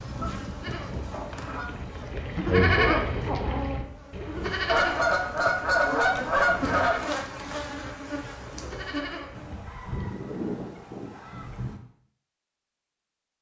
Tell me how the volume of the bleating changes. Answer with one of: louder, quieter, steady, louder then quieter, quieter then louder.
louder then quieter.